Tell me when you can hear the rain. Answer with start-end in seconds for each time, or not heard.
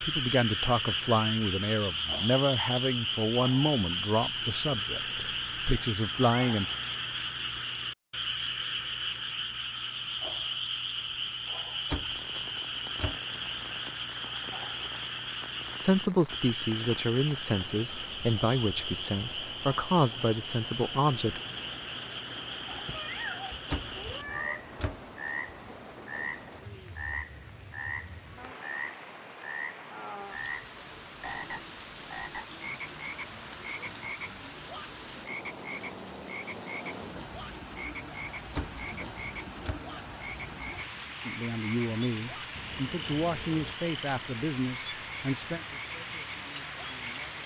12.1-47.4.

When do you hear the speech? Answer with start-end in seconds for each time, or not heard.
0.0-6.7, 15.8-21.4, 41.2-47.4.